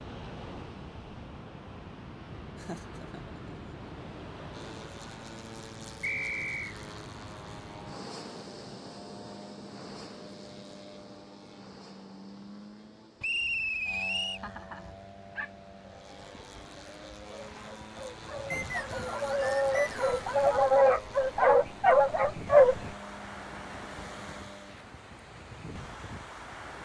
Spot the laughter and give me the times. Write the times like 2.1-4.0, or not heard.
2.5-3.6, 14.4-14.9.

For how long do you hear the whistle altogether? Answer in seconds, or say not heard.
4 s.